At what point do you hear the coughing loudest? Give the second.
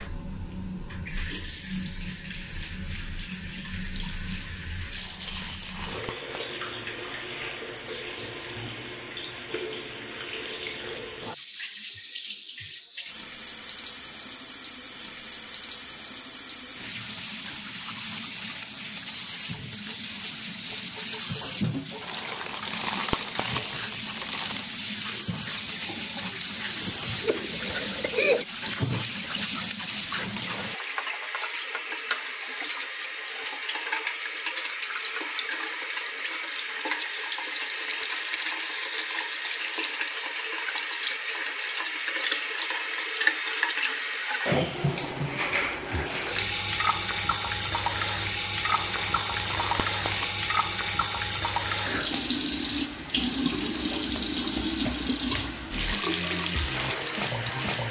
28 s.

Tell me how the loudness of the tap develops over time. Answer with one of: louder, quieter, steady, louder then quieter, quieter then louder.
louder.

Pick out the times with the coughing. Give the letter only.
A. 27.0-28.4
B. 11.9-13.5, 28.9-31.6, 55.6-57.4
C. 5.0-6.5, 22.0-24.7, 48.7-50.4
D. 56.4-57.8
A.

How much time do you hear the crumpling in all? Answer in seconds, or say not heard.
6 s.